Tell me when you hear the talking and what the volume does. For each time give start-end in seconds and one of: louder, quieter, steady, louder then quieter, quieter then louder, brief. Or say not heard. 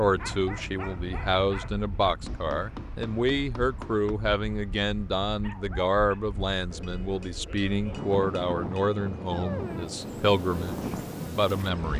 0.0-11.9 steady.